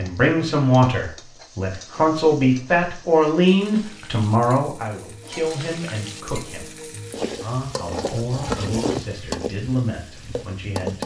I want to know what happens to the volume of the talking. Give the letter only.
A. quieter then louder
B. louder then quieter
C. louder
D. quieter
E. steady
D.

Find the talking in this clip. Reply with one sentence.
The talking can be heard from 0.0 to 11.0 s.